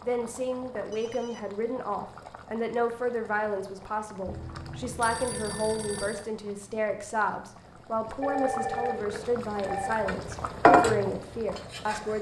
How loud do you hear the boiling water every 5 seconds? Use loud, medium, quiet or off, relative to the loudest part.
quiet, quiet, loud.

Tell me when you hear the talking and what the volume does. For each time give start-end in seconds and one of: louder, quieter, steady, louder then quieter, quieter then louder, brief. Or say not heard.
0.0-12.1 steady.